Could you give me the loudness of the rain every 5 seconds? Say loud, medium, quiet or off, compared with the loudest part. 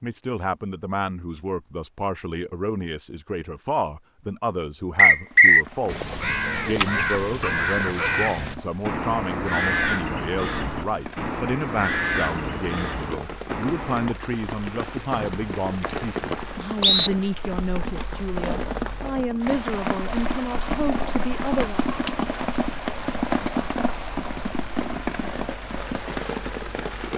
off, quiet, medium, loud, loud, loud.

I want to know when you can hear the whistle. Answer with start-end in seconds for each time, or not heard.
5.0-5.7, 15.1-17.1.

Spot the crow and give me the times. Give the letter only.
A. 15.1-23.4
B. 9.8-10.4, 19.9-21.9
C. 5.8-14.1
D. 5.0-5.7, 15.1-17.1
C.